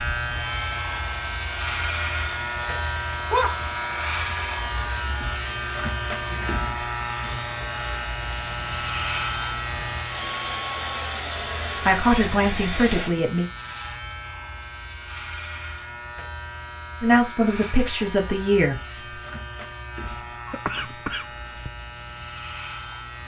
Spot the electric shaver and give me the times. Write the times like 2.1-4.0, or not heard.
0.0-23.2.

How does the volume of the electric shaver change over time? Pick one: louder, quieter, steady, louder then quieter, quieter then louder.
quieter.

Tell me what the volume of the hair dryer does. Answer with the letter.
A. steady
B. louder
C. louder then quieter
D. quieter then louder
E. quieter
B.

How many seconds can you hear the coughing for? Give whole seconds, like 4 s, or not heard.
2 s.